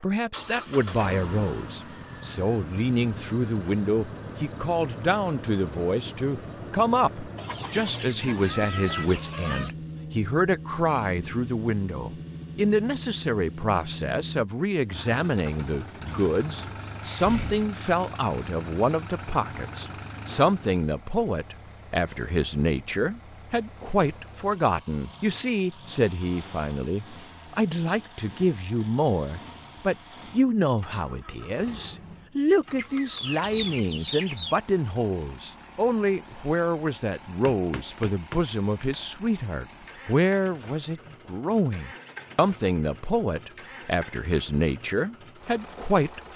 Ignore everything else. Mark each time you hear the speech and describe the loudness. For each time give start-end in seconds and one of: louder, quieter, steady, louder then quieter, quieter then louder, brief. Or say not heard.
0.0-46.3 steady.